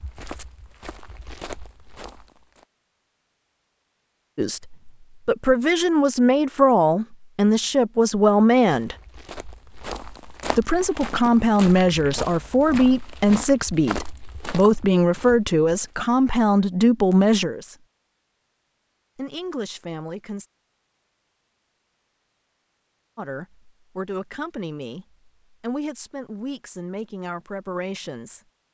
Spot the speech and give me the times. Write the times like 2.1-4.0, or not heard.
4.3-8.9, 10.6-17.9, 19.1-20.4, 23.1-28.4.